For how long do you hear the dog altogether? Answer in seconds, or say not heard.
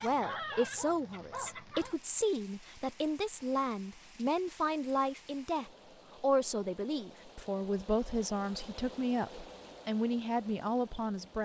2 s.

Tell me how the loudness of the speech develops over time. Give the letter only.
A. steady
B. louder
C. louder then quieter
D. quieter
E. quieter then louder
A.